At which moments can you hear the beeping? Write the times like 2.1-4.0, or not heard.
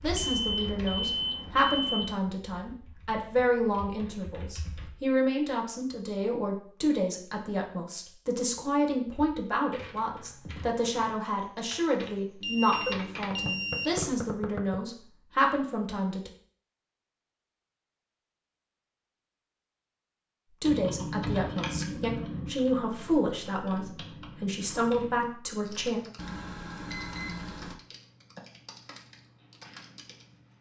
0.1-2.1, 12.4-13.9, 26.1-27.8.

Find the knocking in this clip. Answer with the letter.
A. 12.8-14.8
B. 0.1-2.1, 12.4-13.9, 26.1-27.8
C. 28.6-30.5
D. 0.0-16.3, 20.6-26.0
A.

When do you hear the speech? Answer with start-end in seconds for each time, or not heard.
0.0-16.3, 20.6-26.0.